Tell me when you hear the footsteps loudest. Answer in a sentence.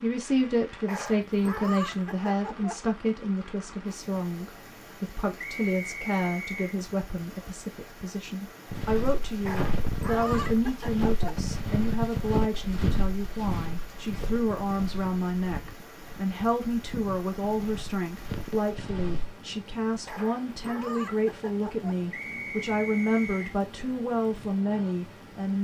The volume of the footsteps peaks at 12 seconds.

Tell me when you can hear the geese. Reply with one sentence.
You can't hear the geese here.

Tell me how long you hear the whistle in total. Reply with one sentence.
You can hear the whistle for 3 seconds altogether.